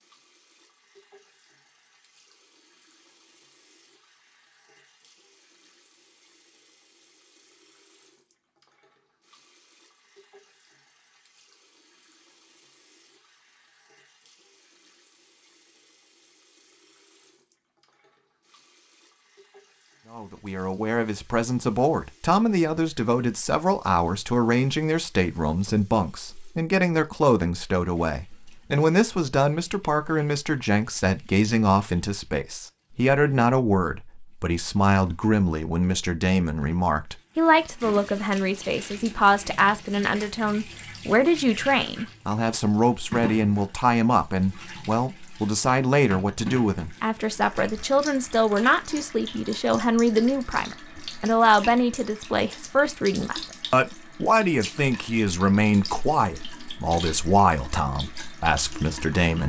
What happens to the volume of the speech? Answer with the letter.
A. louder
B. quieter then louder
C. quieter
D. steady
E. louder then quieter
D.